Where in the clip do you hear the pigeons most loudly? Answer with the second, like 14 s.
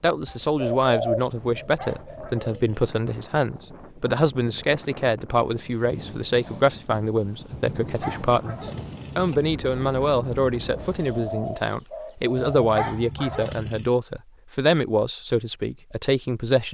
1 s.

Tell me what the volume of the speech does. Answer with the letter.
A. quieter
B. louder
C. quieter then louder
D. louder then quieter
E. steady
E.